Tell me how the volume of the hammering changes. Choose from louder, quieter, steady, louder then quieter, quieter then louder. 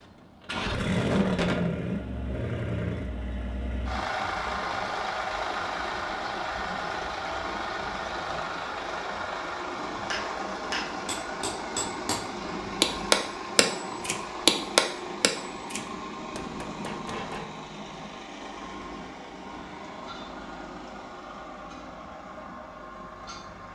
louder then quieter.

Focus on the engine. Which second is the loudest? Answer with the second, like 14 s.
1 s.